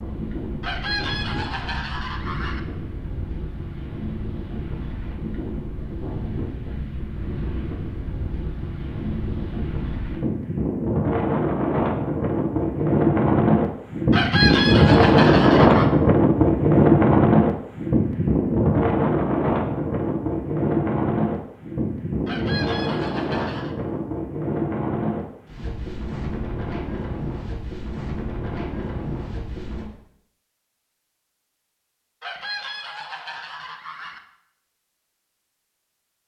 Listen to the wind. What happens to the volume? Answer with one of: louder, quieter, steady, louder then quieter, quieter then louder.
louder then quieter.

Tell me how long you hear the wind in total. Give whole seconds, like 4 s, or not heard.
30 s.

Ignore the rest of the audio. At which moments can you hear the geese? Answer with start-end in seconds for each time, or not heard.
0.6-2.6, 14.1-15.9, 22.2-23.8, 32.2-34.2.